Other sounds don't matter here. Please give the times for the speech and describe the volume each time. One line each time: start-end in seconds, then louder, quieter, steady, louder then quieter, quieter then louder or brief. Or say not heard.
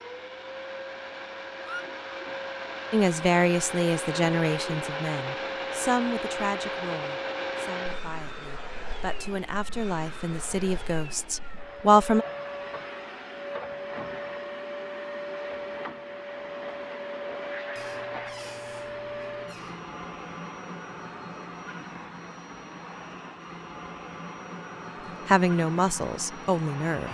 2.9-12.2 quieter then louder
25.2-27.0 brief.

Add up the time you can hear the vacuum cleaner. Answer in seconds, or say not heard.
27 s.